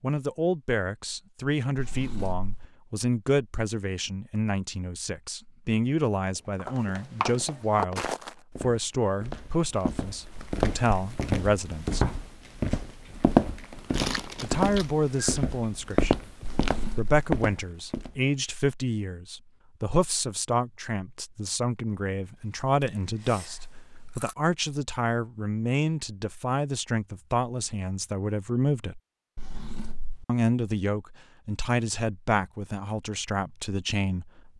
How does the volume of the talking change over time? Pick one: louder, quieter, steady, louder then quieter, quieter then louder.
steady.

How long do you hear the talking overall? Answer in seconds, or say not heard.
31 s.